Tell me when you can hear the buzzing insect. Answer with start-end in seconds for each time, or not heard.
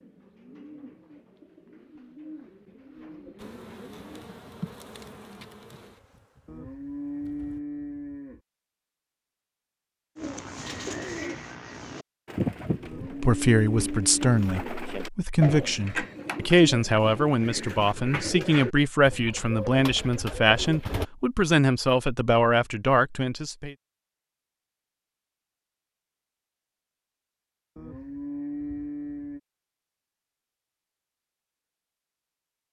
3.4-7.6.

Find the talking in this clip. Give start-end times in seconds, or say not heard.
13.2-23.8.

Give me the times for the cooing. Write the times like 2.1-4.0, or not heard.
0.0-4.2, 10.2-21.1.